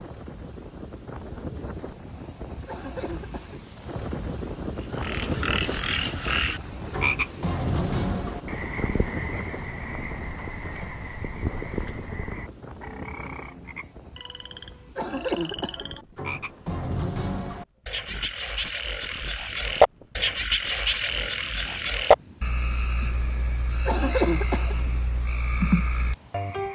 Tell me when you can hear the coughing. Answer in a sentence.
You can hear the coughing from 2.6 to 3.6 s, from 14.9 to 15.9 s and from 23.9 to 24.9 s.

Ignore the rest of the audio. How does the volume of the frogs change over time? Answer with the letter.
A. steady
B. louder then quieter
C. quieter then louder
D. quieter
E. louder
C.